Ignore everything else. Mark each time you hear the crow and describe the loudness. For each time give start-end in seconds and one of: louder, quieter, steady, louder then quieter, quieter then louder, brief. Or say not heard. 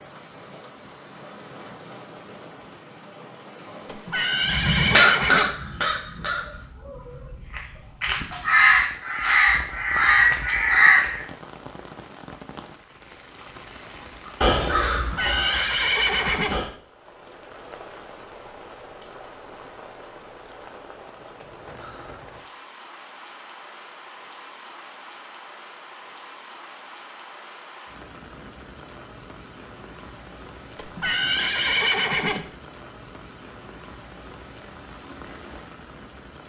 4.5-11.2 quieter then louder
14.2-16.7 brief.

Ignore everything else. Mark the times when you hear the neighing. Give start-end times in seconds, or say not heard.
3.9-5.5, 14.9-16.6, 30.8-32.5.